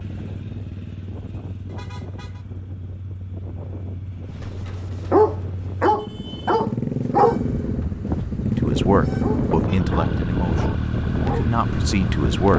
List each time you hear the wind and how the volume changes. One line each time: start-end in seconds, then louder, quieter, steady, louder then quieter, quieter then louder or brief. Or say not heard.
0.0-12.5 louder.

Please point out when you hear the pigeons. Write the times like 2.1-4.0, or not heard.
not heard.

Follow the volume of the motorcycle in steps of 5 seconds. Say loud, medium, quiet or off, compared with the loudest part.
quiet, loud, loud.